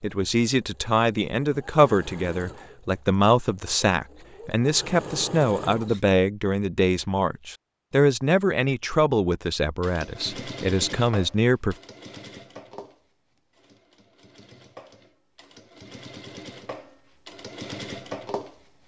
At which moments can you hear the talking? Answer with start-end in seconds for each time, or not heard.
0.0-11.8.